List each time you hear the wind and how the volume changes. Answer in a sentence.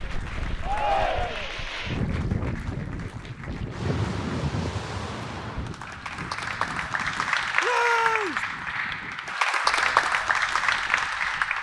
You can hear the wind from 0.0 to 11.5 s, getting quieter.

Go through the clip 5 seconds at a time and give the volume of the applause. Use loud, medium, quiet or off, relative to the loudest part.
quiet, loud, loud.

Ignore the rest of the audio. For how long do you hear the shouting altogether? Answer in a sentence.
The shouting can be heard for 2 seconds in total.